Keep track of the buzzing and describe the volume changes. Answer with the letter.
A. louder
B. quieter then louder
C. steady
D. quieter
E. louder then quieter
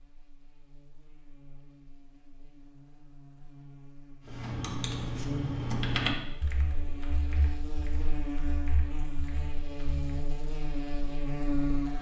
A.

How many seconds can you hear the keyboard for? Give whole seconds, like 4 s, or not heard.
6 s.